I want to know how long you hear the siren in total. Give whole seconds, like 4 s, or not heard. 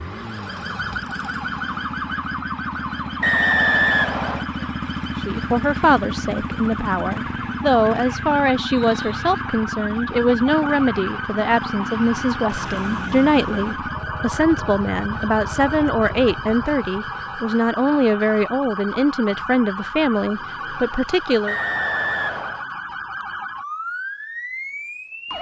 25 s.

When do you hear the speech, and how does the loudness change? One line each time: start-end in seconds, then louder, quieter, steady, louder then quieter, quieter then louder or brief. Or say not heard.
5.2-21.6 steady.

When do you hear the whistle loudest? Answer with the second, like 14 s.
4 s.